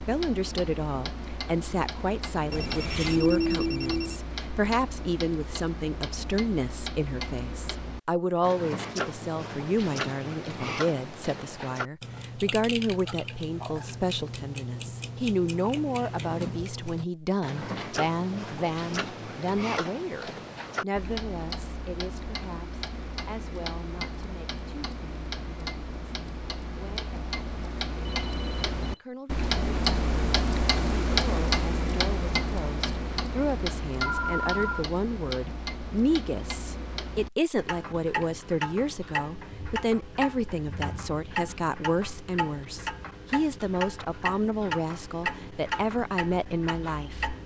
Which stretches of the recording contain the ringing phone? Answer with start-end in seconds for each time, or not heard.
2.5-4.2, 28.1-29.0, 34.0-34.9.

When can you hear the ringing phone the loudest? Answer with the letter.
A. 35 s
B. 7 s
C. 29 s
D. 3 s
D.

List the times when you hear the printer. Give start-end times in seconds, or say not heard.
not heard.